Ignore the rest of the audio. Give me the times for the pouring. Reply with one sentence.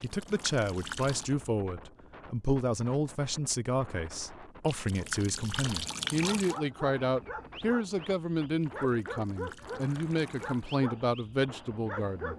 You can hear the pouring from 0.0 to 1.4 s, from 4.7 to 6.6 s and from 8.6 to 10.8 s.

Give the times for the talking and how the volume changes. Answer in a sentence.
The talking can be heard from 0.0 to 12.3 s, at a steady volume.